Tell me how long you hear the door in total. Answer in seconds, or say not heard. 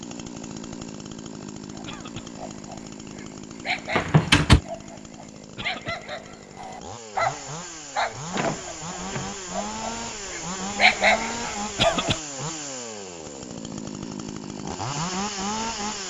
2 s.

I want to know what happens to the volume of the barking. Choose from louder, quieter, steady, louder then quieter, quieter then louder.
louder.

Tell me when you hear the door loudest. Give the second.
4 s.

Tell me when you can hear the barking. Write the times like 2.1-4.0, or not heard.
1.7-12.2.